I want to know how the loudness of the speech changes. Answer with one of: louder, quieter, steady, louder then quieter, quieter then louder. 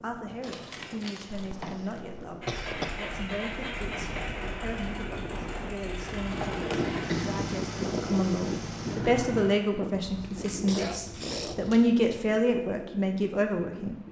louder.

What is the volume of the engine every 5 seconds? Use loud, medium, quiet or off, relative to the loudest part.
loud, loud, off.